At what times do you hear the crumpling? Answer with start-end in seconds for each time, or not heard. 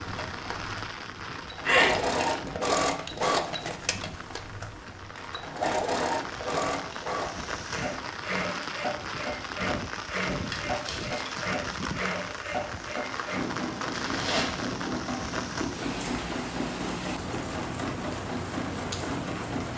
1.6-2.4, 10.3-11.4, 13.9-14.7.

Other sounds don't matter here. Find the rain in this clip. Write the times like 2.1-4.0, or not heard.
0.0-19.7.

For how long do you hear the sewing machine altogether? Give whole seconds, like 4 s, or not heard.
20 s.